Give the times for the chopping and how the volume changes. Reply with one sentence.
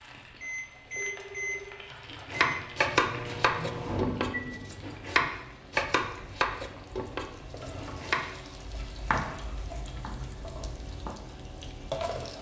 You can hear the chopping from 2.1 to 11.3 s, getting quieter.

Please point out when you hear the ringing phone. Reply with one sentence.
You can hear the ringing phone from 0.8 to 1.9 s.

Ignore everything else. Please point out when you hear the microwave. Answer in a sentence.
The microwave can be heard from 0.0 to 4.6 s.